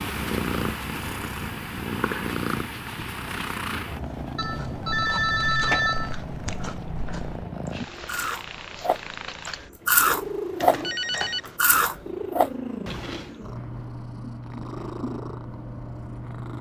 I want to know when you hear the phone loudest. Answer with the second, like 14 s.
6 s.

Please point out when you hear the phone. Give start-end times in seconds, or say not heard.
4.3-6.2, 9.9-11.6.